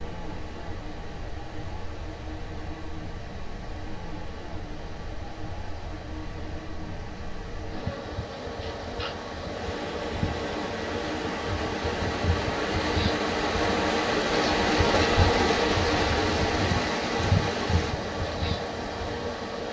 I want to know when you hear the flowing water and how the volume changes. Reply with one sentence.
You can hear the flowing water from 0.0 to 19.6 s, getting louder.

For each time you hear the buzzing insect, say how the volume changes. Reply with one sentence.
You can hear the buzzing insect from 0.0 to 19.6 s, getting louder.